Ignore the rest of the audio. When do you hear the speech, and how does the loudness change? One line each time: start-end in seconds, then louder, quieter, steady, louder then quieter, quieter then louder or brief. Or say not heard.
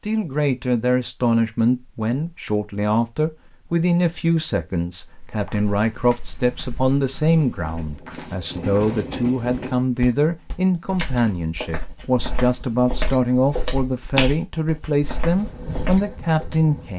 0.0-16.9 steady.